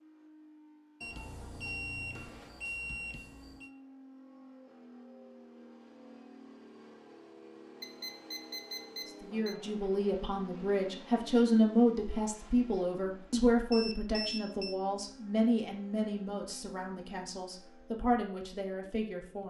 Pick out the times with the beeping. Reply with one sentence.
The beeping can be heard from 1.0 to 3.7 s, from 7.8 to 9.6 s and from 13.7 to 14.8 s.